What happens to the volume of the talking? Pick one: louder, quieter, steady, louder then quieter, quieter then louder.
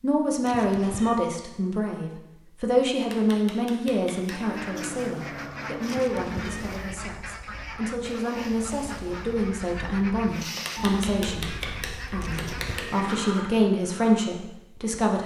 quieter then louder.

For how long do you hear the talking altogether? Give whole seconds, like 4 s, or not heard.
15 s.